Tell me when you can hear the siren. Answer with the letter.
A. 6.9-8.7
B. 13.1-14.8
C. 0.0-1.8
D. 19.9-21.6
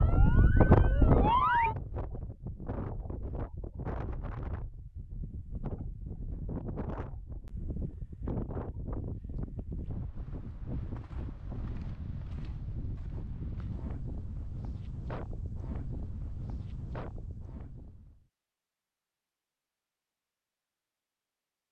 C.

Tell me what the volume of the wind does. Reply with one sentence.
The volume of the wind goes down.